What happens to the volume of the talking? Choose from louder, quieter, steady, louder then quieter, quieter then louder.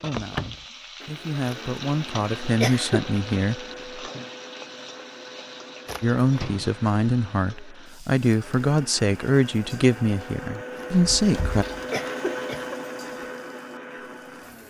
louder.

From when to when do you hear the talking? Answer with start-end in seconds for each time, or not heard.
0.0-4.0, 6.0-11.7.